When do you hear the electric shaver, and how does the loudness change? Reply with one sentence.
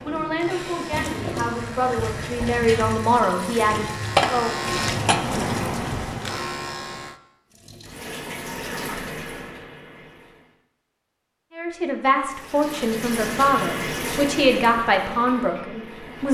The electric shaver can be heard from 0.0 to 7.2 s, getting louder.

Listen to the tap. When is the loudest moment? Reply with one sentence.
The volume of the tap peaks at 5 seconds.